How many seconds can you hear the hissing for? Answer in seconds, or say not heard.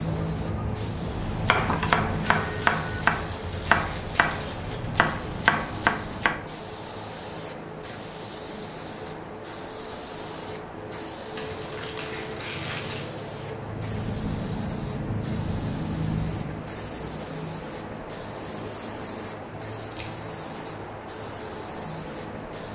23 s.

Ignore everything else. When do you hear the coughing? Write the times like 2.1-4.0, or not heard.
not heard.